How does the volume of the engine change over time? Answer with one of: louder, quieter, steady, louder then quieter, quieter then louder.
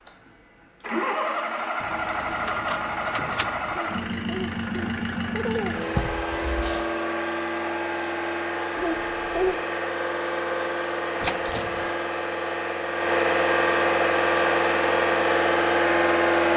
louder.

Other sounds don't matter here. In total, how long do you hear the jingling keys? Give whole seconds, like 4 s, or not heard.
4 s.